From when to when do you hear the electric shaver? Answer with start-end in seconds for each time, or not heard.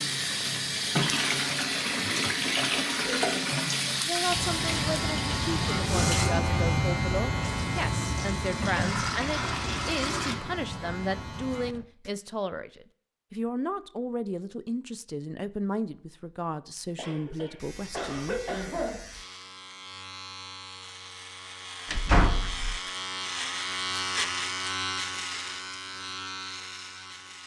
4.2-12.1, 17.3-27.4.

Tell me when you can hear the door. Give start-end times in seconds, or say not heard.
21.9-22.8.